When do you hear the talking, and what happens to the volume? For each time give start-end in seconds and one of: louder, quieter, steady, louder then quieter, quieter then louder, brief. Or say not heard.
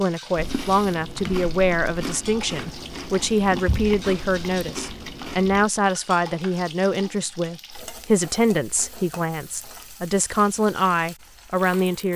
0.0-12.1 steady.